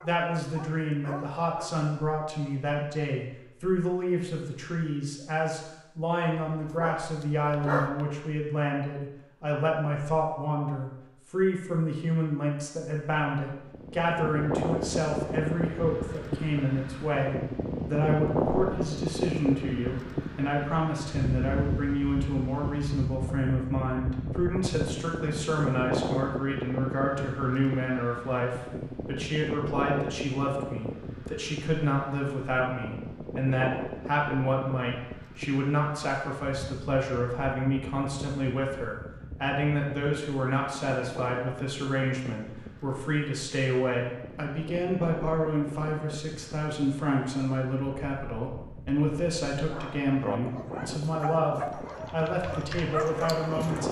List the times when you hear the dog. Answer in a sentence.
You can hear the dog from 0.0 to 1.7 s, from 6.5 to 8.1 s and from 49.7 to 53.8 s.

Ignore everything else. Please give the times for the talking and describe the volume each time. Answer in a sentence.
You can hear the talking from 0.0 to 53.8 s, at a steady volume.